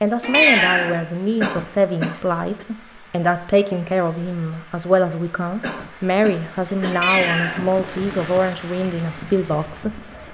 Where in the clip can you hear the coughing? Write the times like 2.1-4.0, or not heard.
1.4-2.6, 5.6-7.0.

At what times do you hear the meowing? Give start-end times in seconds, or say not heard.
0.2-0.9, 6.9-7.7.